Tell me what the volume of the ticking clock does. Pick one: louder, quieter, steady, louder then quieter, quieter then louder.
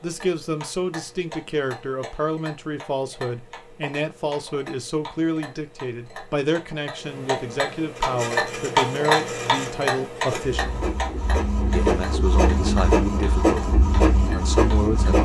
louder then quieter.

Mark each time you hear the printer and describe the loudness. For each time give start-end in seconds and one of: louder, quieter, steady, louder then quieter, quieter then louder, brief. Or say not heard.
8.0-15.2 louder.